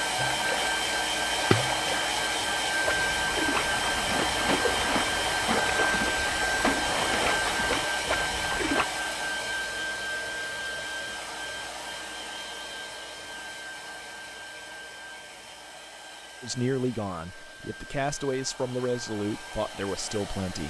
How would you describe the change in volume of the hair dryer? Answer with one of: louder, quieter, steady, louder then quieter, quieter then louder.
quieter.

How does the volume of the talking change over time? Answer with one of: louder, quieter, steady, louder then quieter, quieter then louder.
steady.